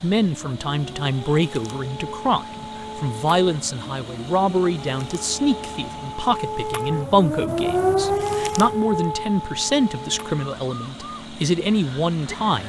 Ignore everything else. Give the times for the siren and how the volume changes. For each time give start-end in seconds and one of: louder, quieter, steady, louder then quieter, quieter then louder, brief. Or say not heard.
0.0-12.6 louder then quieter.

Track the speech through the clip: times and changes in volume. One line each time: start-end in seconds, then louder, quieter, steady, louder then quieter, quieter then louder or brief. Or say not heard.
0.0-12.6 steady.